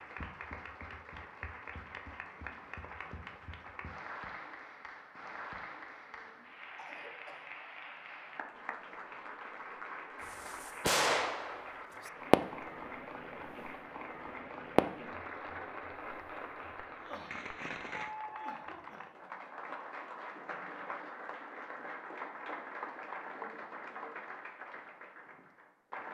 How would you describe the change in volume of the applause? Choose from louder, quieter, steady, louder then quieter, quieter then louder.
steady.